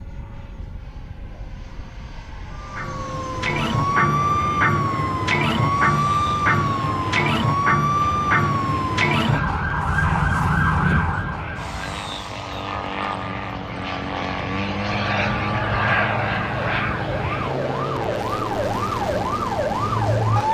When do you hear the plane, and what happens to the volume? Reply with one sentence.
The plane can be heard from 0.0 to 20.5 s, getting louder.